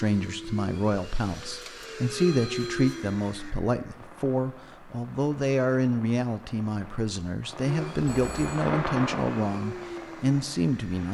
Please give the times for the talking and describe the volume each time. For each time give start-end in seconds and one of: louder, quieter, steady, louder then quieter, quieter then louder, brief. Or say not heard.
0.0-11.0 steady.